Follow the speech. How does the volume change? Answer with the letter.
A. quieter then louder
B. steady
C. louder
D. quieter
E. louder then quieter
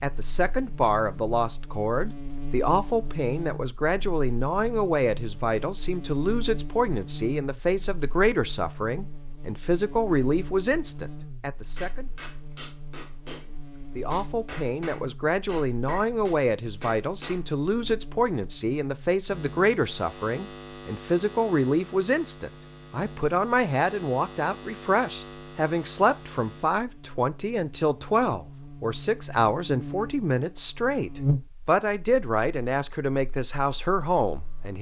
B.